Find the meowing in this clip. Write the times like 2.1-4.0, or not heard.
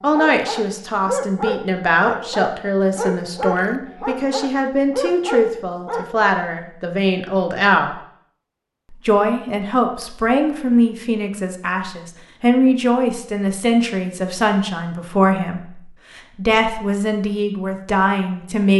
not heard.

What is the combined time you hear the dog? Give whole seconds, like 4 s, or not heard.
6 s.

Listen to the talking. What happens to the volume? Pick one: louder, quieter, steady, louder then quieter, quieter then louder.
steady.